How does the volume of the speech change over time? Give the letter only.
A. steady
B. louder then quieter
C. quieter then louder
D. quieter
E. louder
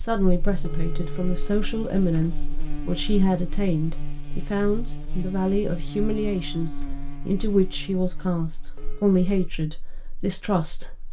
A.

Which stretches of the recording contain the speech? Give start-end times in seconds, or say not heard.
0.0-11.0.